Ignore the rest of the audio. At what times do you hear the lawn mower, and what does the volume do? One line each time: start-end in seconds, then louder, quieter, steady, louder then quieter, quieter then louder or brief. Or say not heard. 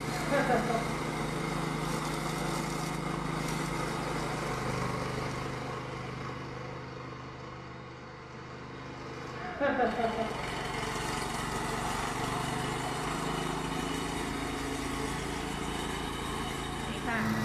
0.0-17.4 quieter then louder.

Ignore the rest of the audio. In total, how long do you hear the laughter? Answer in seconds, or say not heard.
2 s.